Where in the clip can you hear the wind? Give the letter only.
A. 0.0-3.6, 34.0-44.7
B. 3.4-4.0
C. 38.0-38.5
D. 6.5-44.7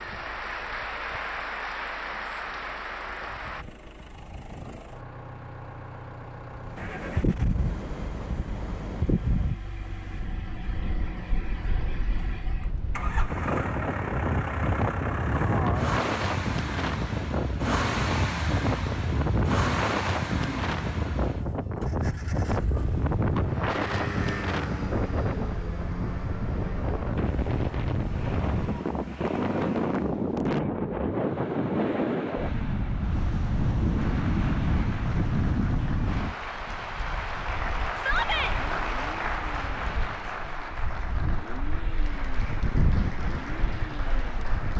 D.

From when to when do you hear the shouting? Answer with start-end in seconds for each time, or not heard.
38.0-38.5.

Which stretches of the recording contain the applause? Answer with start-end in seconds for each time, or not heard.
0.0-3.6, 34.0-44.7.